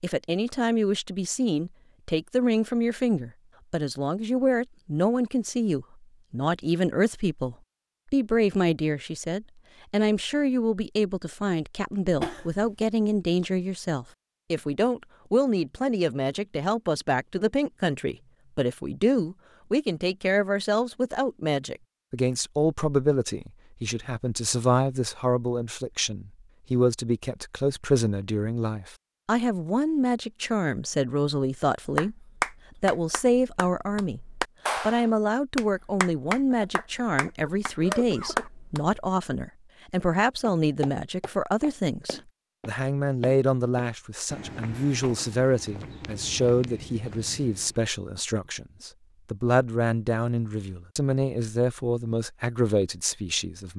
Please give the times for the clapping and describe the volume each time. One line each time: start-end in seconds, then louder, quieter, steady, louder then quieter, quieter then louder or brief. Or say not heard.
31.9-39.0 steady.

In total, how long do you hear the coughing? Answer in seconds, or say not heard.
3 s.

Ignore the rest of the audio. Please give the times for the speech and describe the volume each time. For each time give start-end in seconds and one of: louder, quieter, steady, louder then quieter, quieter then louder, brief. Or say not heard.
0.0-32.1 steady
32.8-53.7 steady.